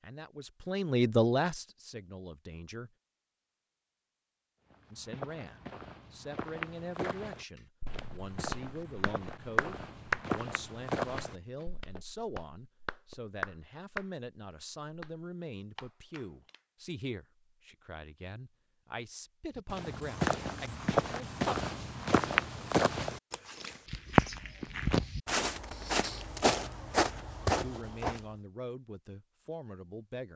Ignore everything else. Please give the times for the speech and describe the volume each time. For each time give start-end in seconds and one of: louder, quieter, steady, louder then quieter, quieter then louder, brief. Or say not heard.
0.0-2.9 brief
4.9-21.6 steady
27.6-30.3 brief.